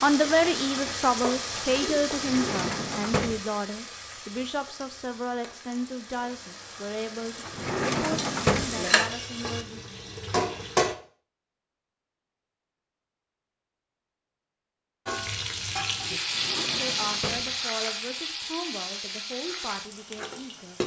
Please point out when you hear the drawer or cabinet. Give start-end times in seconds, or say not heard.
2.1-3.4, 7.5-8.9, 16.2-17.6.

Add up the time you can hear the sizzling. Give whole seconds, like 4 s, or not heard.
17 s.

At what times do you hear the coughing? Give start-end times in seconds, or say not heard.
not heard.